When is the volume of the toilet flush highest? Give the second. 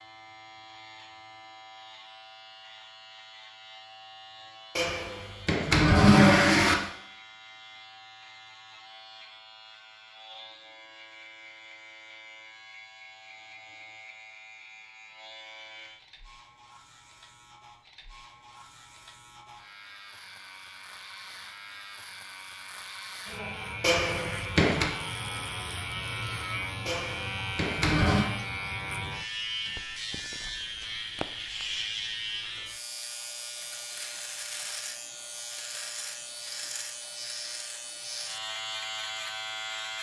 6 s.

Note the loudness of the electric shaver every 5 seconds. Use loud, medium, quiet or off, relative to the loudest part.
quiet, quiet, quiet, quiet, medium, loud, loud, loud.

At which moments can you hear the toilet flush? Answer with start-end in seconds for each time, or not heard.
4.8-6.8, 23.8-24.9, 26.9-28.2.